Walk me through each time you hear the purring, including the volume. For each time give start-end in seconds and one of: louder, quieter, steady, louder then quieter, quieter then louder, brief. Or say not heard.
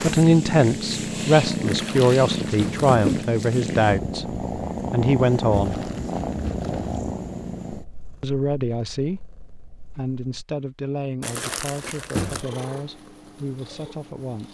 0.0-10.4 quieter
12.2-14.4 brief.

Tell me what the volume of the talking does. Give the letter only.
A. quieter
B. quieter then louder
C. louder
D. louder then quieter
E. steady
A.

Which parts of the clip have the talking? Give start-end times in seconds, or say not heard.
0.0-5.8, 8.2-14.4.